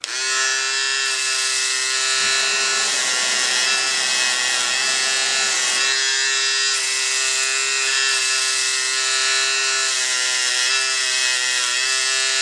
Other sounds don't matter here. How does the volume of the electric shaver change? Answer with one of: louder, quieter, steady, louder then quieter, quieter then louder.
steady.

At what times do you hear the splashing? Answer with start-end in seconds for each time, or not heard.
not heard.